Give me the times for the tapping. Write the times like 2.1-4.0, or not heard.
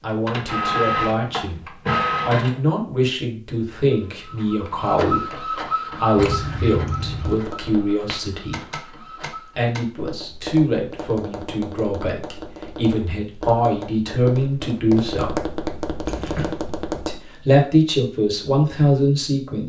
7.2-17.2.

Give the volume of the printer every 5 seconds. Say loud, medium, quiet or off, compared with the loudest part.
loud, medium, off, off.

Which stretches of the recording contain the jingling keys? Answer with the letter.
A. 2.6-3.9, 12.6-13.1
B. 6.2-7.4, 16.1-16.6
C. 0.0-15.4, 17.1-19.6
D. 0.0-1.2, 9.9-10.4
B.